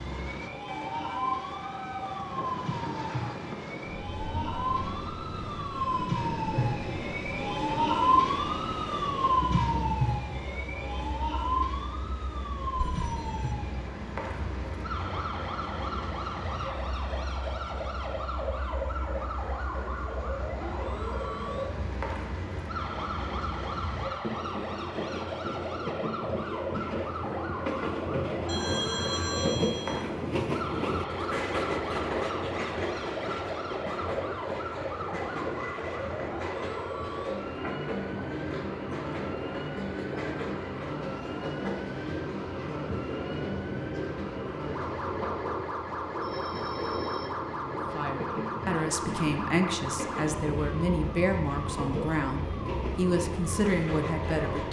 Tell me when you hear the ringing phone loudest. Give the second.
29 s.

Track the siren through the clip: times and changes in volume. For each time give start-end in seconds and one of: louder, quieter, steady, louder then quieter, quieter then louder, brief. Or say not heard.
0.0-54.6 quieter.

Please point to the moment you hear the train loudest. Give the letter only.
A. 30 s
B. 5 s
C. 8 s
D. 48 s
A.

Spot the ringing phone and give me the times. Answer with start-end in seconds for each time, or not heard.
12.8-13.6, 28.4-30.1, 46.2-47.4.